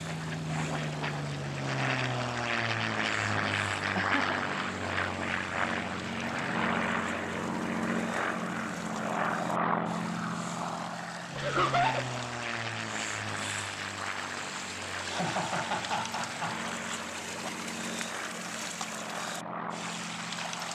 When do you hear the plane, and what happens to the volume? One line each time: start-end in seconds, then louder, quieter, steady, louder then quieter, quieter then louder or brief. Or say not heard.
0.0-20.7 quieter.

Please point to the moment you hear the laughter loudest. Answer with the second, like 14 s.
12 s.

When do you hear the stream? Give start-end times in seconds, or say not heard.
0.0-20.7.